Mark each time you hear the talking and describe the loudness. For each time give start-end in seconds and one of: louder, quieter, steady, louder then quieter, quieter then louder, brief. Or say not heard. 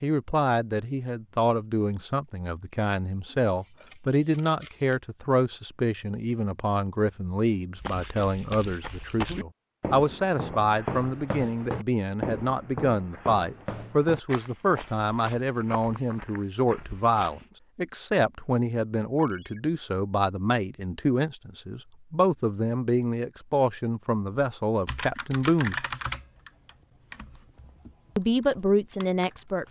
0.0-25.8 steady
28.1-29.6 brief.